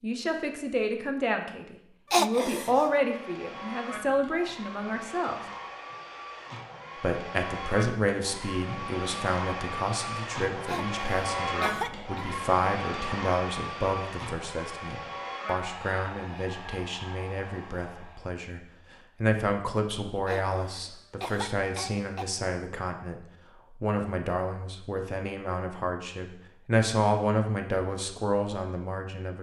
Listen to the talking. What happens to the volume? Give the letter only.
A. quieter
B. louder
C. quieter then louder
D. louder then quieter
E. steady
E.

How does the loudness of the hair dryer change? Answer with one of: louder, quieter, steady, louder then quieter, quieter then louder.
louder then quieter.